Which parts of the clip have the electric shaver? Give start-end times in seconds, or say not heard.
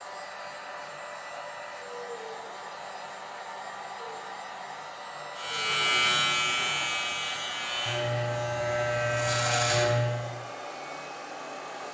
5.3-10.3.